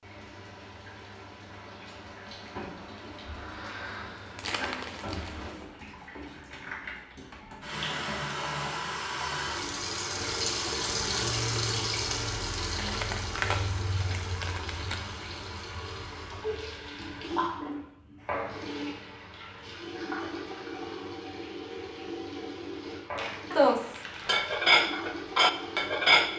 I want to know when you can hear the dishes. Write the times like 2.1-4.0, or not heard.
23.5-26.3.